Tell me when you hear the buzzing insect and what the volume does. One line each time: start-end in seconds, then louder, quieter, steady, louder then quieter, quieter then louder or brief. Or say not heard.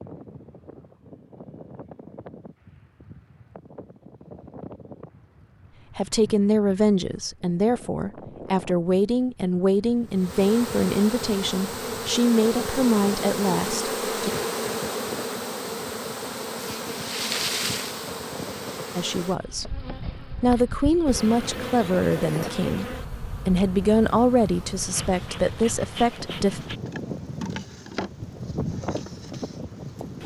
10.2-30.2 quieter.